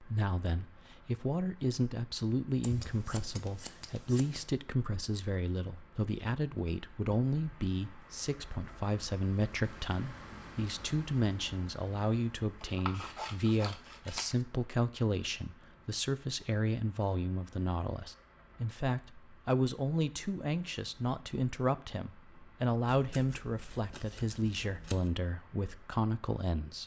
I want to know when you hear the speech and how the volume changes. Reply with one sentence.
The speech can be heard from 0.0 to 26.8 s, at a steady volume.